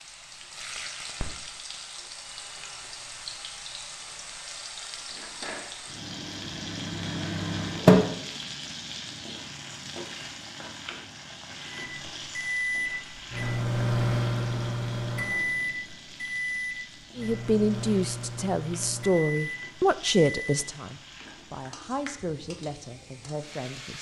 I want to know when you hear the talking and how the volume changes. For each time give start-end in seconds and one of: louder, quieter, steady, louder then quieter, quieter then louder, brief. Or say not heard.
17.1-23.9 quieter.